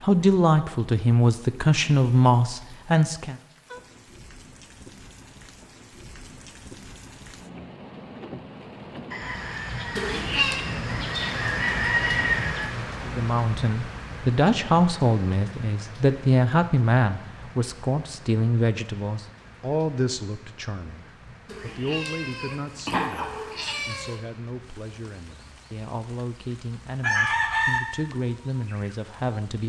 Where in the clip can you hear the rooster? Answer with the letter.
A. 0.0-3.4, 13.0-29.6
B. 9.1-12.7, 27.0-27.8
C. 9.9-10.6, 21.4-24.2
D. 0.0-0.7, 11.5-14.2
B.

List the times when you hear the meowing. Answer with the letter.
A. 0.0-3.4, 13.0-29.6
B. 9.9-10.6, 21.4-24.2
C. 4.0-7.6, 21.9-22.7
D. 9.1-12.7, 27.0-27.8
B.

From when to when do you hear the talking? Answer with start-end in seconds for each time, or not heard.
0.0-3.4, 13.0-29.6.